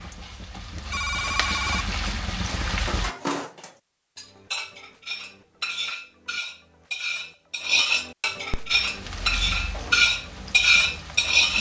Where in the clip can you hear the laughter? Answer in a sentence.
You can't hear the laughter here.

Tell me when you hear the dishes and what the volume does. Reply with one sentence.
You can hear the dishes from 2.5 to 11.5 s, getting louder.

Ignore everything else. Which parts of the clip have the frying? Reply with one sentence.
You can hear the frying from 0.0 to 3.1 s and from 8.7 to 11.5 s.